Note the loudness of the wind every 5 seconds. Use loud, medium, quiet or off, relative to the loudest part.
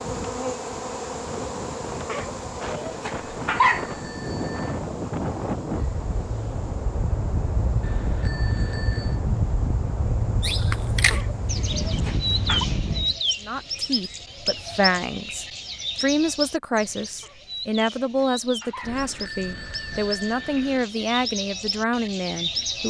medium, loud, loud, off, off.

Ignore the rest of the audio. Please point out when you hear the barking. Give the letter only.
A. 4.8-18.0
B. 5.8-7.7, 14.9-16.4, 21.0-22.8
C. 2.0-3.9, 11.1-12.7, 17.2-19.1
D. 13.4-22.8
C.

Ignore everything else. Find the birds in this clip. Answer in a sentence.
The birds can be heard from 10.4 to 22.8 s.